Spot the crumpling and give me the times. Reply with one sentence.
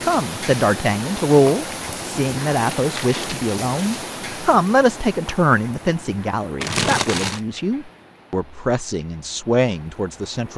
You can hear the crumpling from 2.8 to 3.6 s and from 6.6 to 7.4 s.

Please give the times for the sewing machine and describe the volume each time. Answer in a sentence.
You can't hear the sewing machine here.